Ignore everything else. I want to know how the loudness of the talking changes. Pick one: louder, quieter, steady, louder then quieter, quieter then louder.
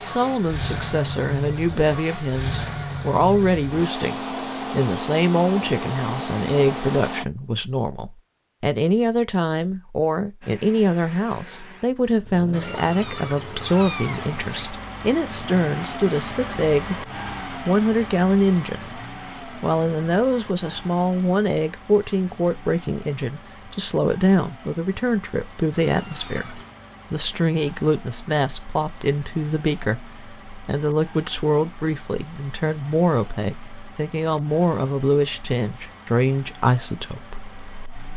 steady.